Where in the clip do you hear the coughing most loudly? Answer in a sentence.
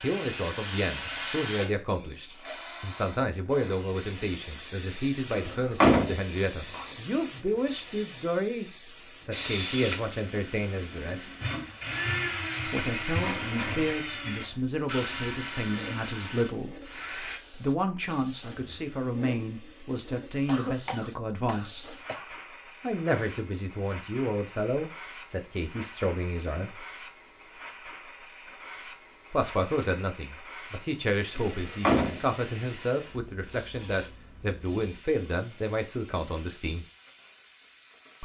The volume of the coughing peaks at 21 seconds.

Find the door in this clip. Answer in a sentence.
The door can be heard from 5.3 to 6.8 s and from 31.4 to 32.2 s.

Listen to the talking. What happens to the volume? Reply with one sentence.
The volume of the talking stays about the same.